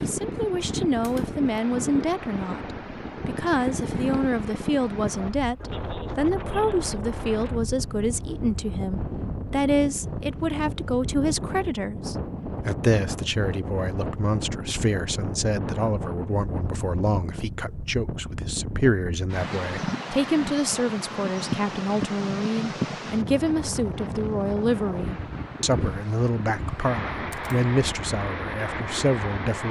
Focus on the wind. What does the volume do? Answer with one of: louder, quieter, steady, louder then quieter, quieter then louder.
steady.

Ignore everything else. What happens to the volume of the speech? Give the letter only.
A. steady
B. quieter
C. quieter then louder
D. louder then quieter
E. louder
A.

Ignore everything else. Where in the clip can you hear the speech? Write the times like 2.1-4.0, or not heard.
0.0-29.6.